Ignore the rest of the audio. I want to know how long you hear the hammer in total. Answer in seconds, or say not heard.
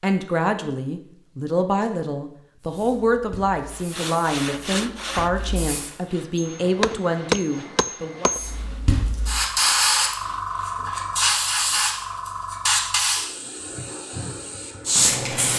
2 s.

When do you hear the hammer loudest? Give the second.
7 s.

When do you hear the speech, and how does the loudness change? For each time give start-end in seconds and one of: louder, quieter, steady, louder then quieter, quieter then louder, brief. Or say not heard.
0.0-8.3 steady.